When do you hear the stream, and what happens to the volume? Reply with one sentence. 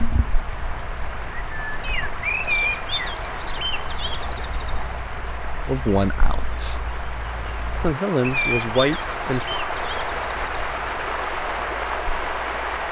The stream can be heard from 0.0 to 12.8 s, getting louder.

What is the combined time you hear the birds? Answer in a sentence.
You can hear the birds for 13 seconds altogether.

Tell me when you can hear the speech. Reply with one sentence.
The speech can be heard from 5.7 to 6.8 s and from 7.8 to 9.6 s.